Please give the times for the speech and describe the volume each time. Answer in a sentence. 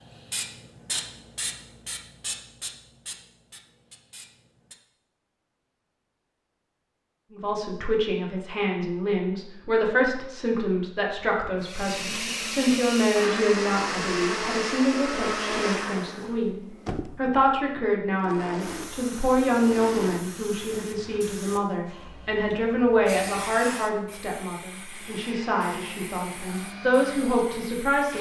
You can hear the speech from 7.3 to 28.1 s, at a steady volume.